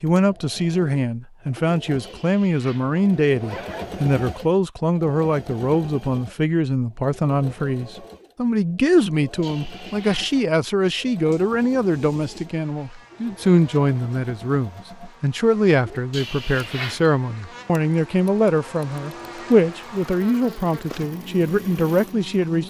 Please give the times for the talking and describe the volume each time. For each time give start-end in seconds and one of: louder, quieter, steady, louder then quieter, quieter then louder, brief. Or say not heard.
0.0-22.6 steady.